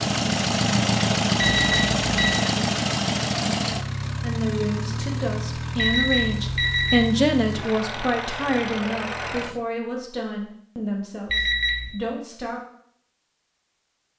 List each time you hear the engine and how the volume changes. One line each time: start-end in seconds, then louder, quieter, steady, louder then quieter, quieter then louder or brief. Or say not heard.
0.0-9.6 quieter.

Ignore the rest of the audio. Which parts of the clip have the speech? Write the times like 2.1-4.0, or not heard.
4.2-12.6.